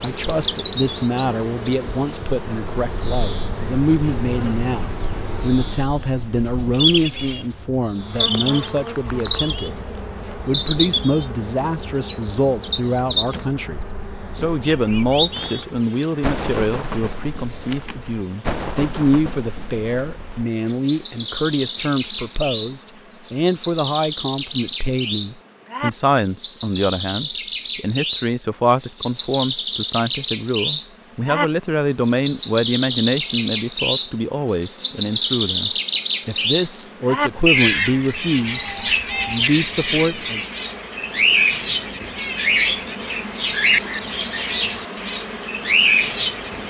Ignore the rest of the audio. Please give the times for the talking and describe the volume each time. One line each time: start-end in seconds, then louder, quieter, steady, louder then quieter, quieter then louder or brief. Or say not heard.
0.0-40.4 steady.